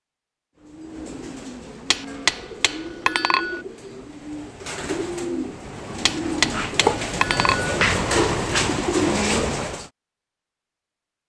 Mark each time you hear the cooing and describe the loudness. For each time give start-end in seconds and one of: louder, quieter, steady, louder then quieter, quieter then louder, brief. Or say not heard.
0.6-9.9 louder.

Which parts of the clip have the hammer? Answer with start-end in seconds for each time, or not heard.
1.9-3.6, 6.0-7.8.